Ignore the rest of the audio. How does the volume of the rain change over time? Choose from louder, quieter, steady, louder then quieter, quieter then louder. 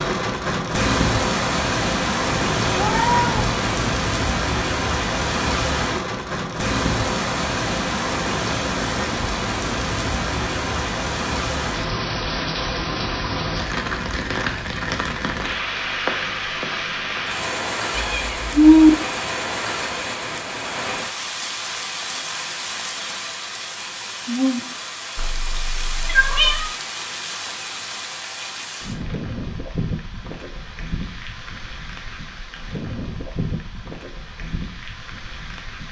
quieter.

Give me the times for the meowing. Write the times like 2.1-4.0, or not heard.
2.5-3.9, 17.9-18.9, 25.1-26.7.